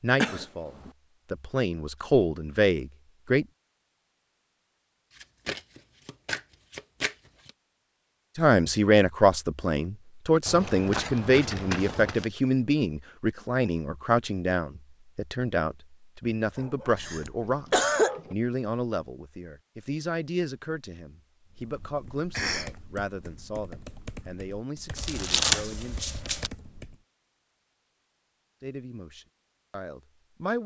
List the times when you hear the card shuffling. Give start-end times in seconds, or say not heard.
5.2-7.5, 10.4-12.3, 24.9-26.5.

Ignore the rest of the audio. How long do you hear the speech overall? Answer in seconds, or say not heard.
23 s.